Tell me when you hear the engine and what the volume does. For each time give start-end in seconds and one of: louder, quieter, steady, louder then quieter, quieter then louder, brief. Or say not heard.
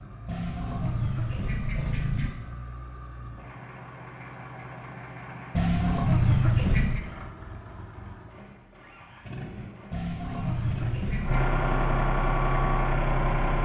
0.0-13.6 louder.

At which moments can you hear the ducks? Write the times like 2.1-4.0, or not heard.
0.2-2.3, 5.5-7.0, 9.9-11.4.